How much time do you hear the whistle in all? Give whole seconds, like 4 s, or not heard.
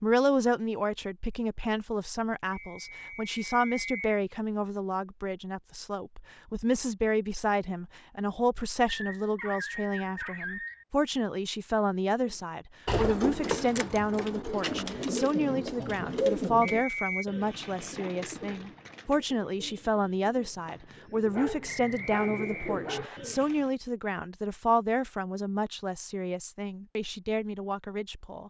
4 s.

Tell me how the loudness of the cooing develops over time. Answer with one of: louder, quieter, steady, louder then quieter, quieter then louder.
quieter then louder.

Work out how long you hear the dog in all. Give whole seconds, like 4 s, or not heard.
4 s.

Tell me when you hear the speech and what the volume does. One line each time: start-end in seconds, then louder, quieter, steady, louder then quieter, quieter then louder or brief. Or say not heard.
0.0-28.4 steady.